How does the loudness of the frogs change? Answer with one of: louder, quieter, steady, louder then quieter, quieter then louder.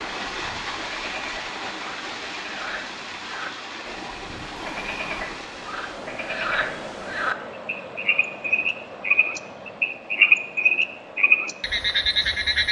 louder.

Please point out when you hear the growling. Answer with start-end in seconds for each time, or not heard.
4.5-5.3.